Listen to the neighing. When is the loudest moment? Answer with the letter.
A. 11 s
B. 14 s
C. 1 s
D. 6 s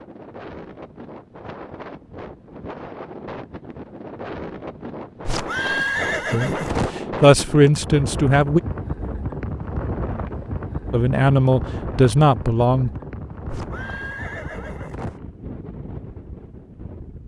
D.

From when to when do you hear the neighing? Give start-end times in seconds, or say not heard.
5.2-7.0, 13.4-15.2.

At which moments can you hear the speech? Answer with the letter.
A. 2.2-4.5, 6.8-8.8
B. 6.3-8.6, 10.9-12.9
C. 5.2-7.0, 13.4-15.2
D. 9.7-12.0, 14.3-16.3
B.